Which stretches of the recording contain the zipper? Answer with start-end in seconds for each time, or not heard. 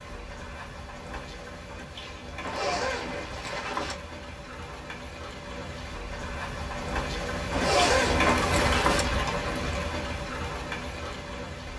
2.4-4.0, 7.5-9.1.